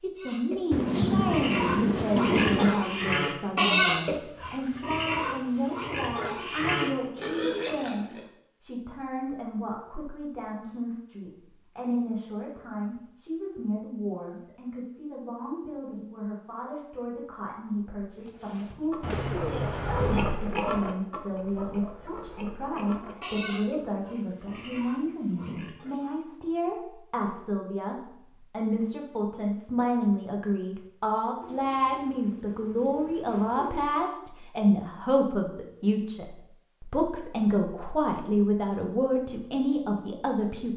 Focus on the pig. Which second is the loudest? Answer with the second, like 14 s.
4 s.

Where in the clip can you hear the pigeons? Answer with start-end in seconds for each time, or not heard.
0.7-2.7, 19.0-20.4, 31.4-34.0.